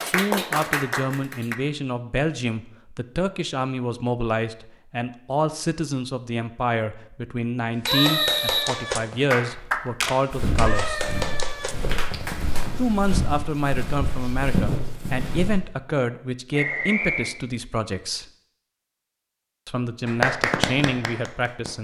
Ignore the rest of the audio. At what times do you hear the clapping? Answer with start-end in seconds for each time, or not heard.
0.0-1.6, 7.8-12.7, 20.1-21.7.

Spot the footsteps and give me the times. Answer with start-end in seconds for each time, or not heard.
10.3-15.6.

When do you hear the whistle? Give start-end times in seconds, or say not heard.
7.8-9.2, 16.6-17.4.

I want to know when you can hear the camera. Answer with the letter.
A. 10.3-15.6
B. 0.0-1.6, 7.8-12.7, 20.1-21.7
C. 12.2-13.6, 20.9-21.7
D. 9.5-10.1
D.